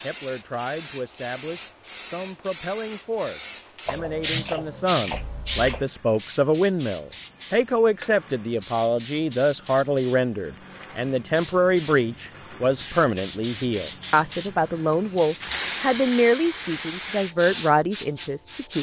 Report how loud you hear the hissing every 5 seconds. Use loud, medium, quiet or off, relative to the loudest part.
loud, medium, medium, loud.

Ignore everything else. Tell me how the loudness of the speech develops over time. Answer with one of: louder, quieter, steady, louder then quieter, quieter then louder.
louder.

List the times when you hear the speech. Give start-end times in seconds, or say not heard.
0.0-18.7.